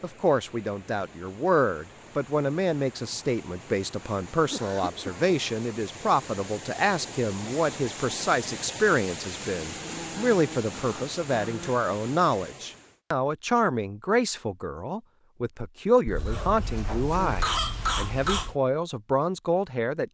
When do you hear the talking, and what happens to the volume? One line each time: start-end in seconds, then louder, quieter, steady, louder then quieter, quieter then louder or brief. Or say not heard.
0.0-20.0 steady.